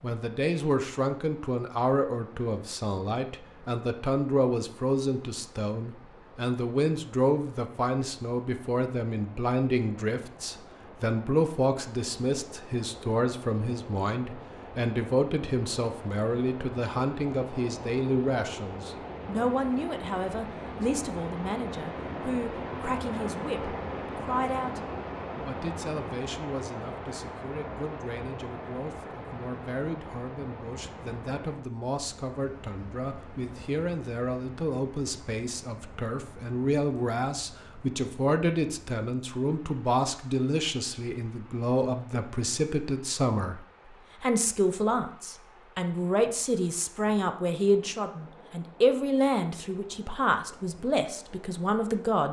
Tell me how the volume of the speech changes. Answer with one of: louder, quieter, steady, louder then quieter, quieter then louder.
quieter then louder.